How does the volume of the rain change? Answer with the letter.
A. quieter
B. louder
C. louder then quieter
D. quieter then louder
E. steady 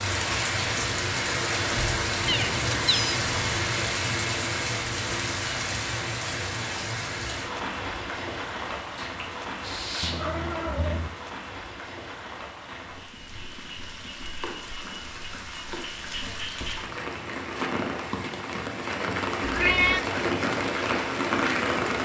D.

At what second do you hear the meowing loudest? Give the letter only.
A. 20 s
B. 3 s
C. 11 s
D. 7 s
A.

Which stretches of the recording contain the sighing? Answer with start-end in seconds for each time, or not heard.
8.9-10.2.